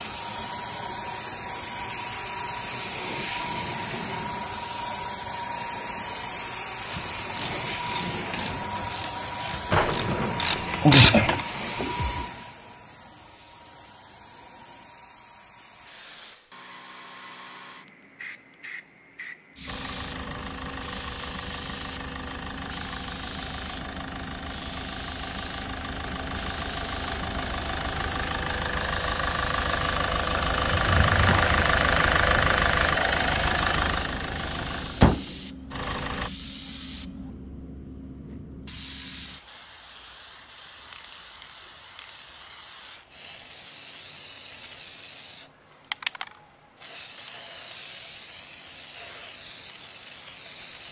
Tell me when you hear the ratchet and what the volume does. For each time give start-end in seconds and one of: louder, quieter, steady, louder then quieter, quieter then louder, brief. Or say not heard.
6.8-12.2 louder.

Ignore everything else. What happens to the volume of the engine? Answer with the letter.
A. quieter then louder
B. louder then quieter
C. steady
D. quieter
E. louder
E.